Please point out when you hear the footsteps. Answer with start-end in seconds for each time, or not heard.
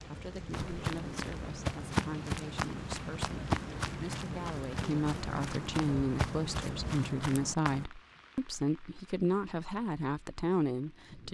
0.5-7.8.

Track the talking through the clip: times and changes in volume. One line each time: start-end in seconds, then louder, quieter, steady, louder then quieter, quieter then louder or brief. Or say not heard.
0.1-11.2 louder.